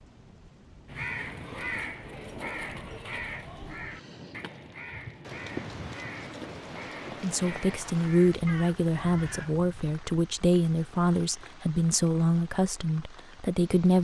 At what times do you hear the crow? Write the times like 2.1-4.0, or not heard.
0.8-9.6.